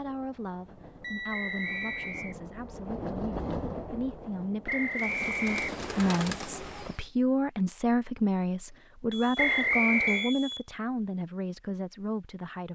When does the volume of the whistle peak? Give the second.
10 s.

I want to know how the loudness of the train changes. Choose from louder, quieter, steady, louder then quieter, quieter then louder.
louder then quieter.